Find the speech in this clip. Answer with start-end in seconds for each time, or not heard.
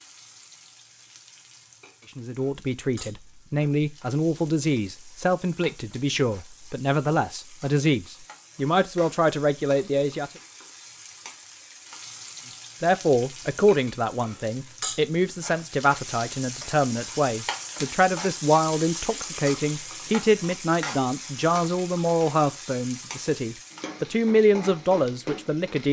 2.1-10.3, 12.8-25.8.